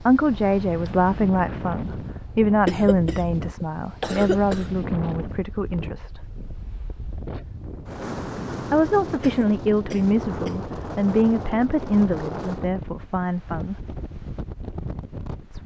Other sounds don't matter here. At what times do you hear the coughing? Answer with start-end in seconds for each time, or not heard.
2.6-4.7, 9.2-10.7.